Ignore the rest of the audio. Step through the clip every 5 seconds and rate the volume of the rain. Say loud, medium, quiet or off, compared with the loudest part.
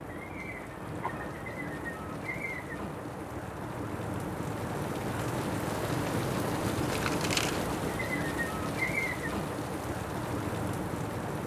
medium, loud, loud.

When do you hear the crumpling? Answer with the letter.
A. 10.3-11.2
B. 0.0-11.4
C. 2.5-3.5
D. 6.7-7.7
D.